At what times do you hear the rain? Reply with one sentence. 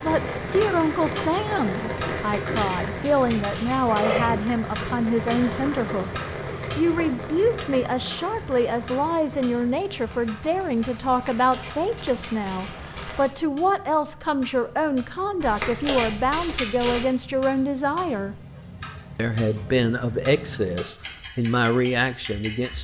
You can hear the rain from 0.0 to 13.3 s.